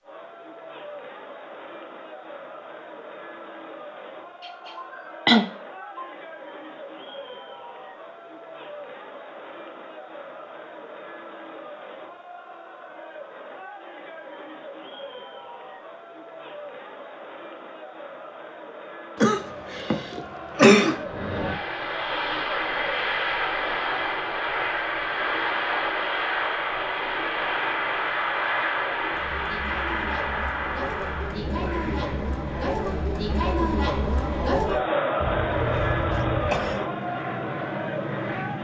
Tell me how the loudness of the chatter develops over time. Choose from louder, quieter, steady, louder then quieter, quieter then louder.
louder.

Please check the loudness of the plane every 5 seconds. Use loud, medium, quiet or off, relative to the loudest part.
off, off, off, off, loud, loud, medium, medium.